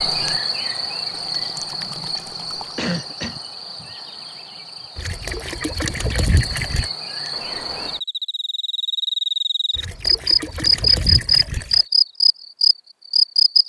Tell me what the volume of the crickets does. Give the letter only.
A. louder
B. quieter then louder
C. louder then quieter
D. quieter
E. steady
B.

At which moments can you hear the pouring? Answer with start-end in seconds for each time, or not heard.
1.1-2.8, 5.0-6.9, 9.8-11.8.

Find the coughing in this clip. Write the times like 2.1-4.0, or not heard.
2.8-3.4.